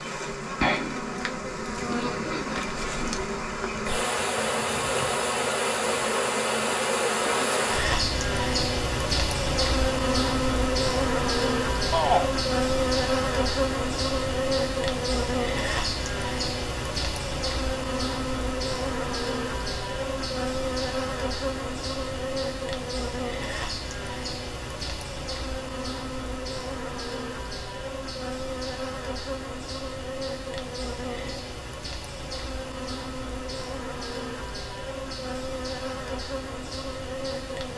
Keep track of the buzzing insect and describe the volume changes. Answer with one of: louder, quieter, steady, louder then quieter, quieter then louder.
quieter.